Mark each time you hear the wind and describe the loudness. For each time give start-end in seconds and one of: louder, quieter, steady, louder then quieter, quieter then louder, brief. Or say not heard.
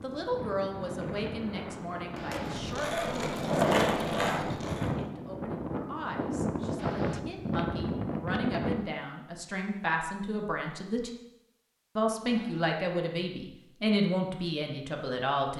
0.0-8.8 louder.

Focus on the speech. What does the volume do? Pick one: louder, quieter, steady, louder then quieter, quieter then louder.
quieter then louder.